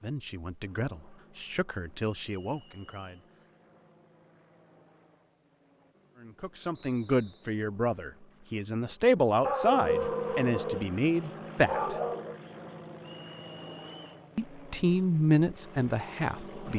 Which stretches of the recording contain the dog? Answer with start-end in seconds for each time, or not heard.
9.4-12.4.